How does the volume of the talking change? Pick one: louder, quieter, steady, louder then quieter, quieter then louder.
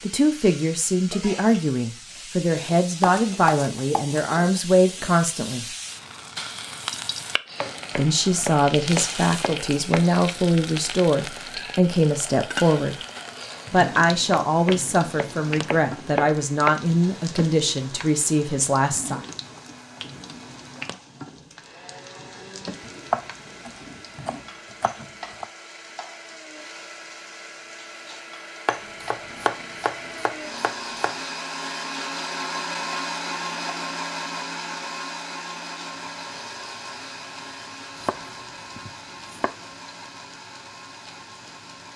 steady.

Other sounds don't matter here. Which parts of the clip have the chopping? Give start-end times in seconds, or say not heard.
3.0-4.2, 7.5-10.1, 14.3-16.8, 22.8-25.4, 28.6-31.2, 38.0-39.5.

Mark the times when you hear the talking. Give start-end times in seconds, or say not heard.
0.0-5.7, 8.0-12.9, 13.7-19.2.